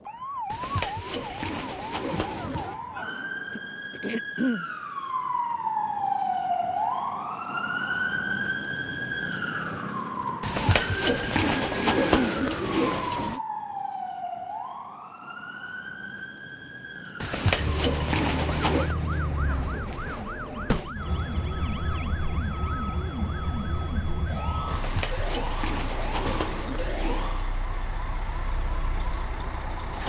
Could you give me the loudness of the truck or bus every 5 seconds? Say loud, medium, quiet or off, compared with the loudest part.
off, off, off, loud, loud, medium.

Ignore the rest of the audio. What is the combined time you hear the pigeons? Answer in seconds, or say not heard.
10 s.